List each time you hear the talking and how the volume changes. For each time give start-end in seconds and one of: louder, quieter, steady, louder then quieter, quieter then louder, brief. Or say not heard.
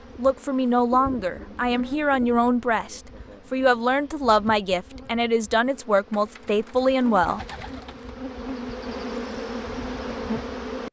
0.1-7.4 steady.